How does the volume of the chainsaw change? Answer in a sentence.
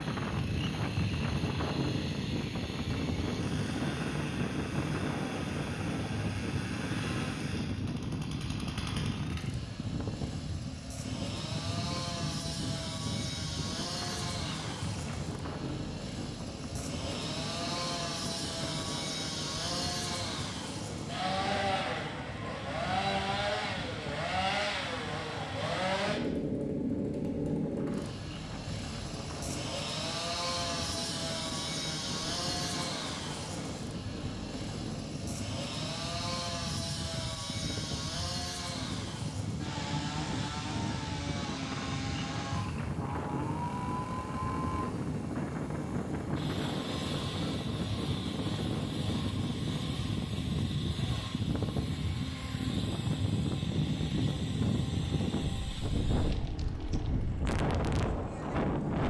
The volume of the chainsaw goes up, then down.